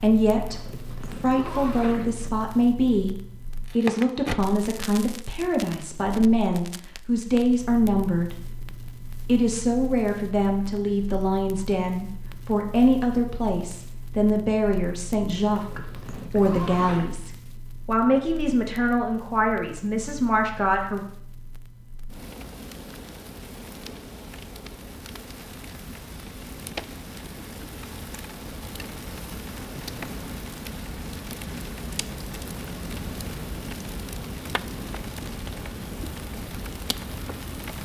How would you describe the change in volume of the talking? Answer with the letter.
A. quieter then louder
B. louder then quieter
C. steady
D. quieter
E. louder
C.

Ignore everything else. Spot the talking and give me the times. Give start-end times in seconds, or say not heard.
0.0-3.1, 3.8-8.3, 9.2-21.1.